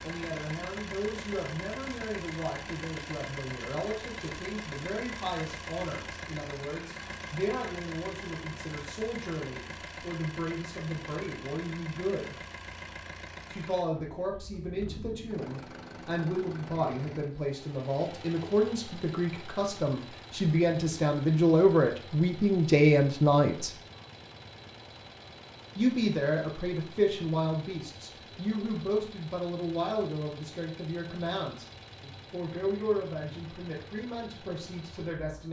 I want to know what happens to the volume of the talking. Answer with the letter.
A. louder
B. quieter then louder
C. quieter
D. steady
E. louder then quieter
E.